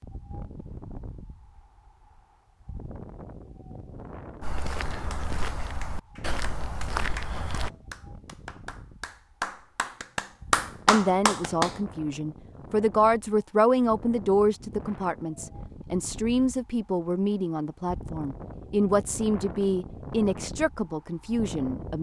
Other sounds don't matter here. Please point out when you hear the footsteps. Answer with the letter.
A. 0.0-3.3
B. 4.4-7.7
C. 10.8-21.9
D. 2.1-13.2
B.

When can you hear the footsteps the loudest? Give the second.
7 s.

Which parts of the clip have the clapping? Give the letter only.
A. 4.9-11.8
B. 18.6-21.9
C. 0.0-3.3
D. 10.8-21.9
A.